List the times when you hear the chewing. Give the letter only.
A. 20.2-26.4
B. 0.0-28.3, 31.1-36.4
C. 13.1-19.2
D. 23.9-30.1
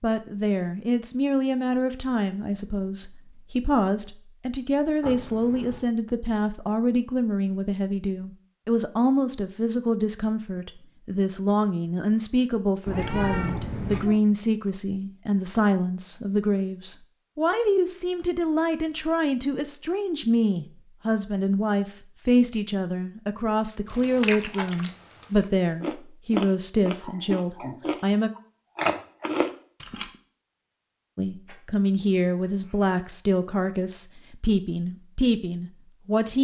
D.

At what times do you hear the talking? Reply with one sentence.
The talking can be heard from 0.0 to 28.3 s and from 31.1 to 36.4 s.